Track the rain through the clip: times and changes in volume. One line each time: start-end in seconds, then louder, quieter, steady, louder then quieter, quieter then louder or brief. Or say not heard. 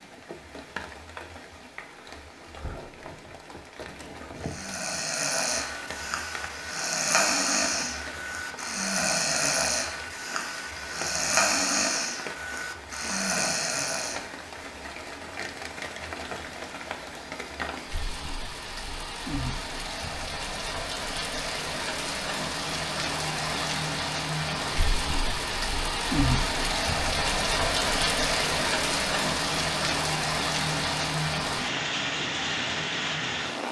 0.0-33.6 louder.